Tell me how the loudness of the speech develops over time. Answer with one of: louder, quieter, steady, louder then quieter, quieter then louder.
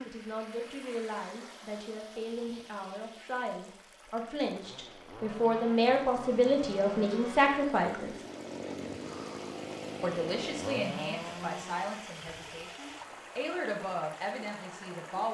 louder then quieter.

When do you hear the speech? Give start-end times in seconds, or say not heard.
0.0-8.1, 10.0-15.2.